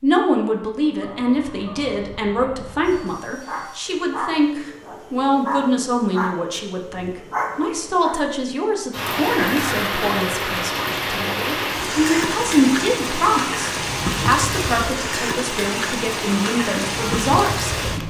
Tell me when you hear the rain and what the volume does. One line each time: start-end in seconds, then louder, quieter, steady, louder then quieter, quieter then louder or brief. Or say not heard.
8.9-18.0 steady.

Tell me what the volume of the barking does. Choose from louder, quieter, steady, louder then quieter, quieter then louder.
louder.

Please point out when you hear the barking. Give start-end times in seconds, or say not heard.
0.8-8.2.